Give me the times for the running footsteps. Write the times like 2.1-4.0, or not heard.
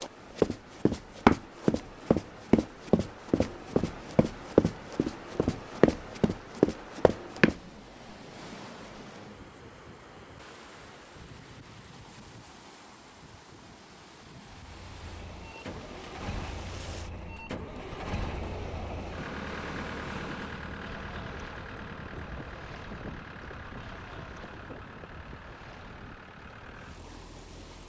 0.0-7.5.